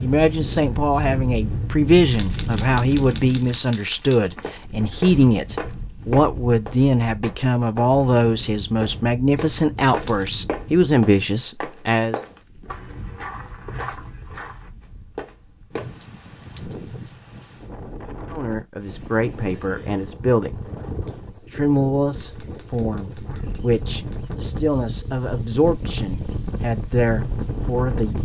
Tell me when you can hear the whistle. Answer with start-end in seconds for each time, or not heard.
not heard.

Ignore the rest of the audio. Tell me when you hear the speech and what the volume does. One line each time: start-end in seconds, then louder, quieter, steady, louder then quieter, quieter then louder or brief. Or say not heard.
0.0-12.2 steady
18.3-20.6 brief
21.5-28.2 steady.